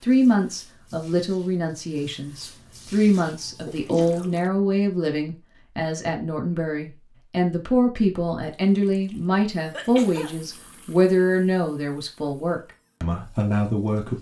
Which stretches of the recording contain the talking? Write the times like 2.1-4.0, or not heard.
0.0-14.1.